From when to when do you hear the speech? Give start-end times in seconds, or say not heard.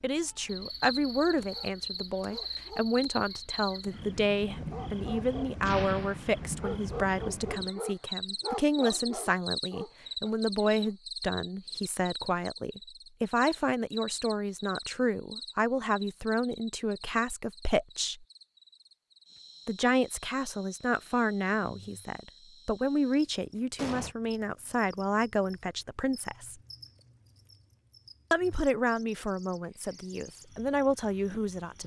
0.0-18.2, 19.6-26.6, 28.3-31.8.